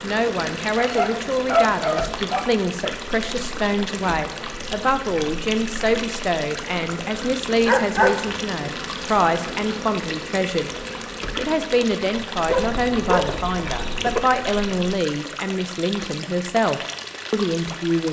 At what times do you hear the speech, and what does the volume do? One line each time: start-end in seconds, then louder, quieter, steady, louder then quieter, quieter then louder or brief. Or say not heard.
0.0-18.0 steady.